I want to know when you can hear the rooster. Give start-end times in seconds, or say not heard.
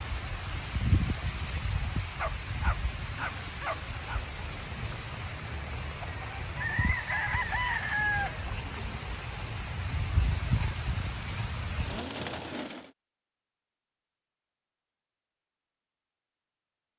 6.0-8.5.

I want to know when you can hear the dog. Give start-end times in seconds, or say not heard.
2.1-4.2.